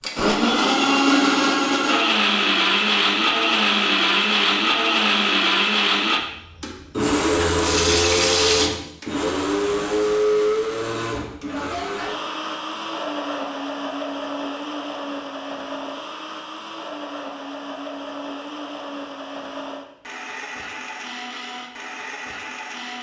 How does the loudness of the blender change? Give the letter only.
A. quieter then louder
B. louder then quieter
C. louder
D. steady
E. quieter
E.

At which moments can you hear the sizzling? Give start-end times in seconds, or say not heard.
7.2-8.7.